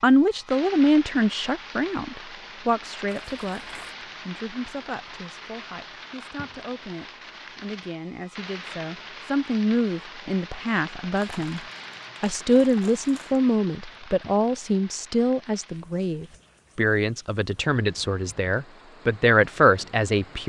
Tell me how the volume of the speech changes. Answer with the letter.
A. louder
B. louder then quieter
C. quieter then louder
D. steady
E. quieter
C.